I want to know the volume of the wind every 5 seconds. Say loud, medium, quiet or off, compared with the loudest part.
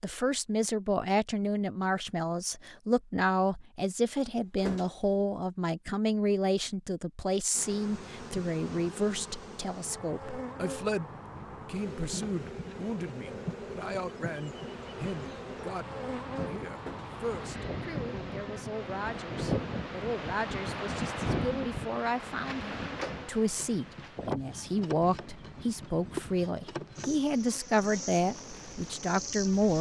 off, off, quiet, loud, loud, quiet.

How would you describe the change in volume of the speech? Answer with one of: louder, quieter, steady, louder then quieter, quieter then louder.
quieter then louder.